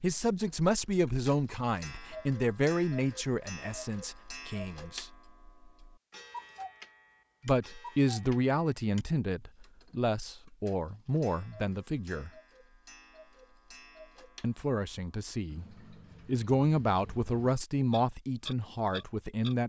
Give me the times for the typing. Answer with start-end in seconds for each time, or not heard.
not heard.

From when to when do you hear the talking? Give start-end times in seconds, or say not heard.
0.0-5.0, 7.5-12.3, 14.4-15.7, 16.2-19.6.